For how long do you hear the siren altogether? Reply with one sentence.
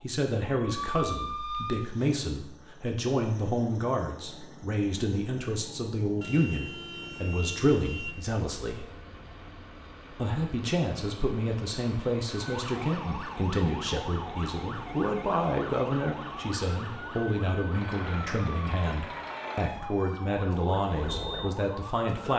You can hear the siren for 12 seconds altogether.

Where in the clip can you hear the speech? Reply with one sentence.
The speech can be heard from 0.0 to 8.9 s and from 10.1 to 22.3 s.